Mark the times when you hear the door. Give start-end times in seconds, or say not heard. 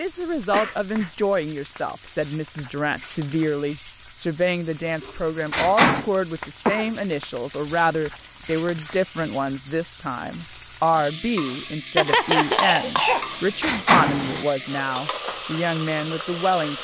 5.0-6.0, 13.1-14.4.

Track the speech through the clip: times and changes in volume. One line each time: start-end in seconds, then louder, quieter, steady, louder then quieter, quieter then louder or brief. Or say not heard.
0.0-16.7 steady.